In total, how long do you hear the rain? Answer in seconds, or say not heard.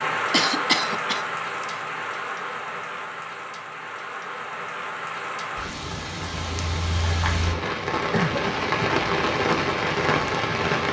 11 s.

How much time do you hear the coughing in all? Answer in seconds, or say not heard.
2 s.